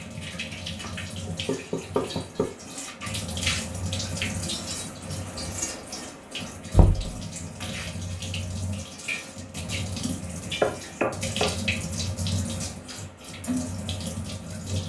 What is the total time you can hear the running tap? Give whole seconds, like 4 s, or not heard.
15 s.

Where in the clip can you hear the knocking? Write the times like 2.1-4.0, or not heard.
0.8-2.5, 6.8-7.2, 10.2-11.6.